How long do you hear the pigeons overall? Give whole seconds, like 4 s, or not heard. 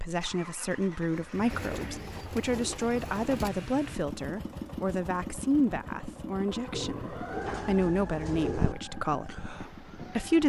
4 s.